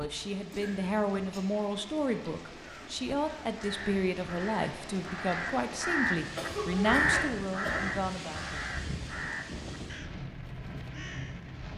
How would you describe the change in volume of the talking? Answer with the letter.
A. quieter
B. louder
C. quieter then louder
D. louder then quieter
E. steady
E.